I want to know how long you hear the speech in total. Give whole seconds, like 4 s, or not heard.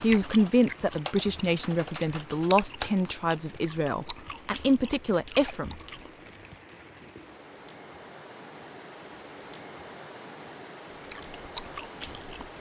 6 s.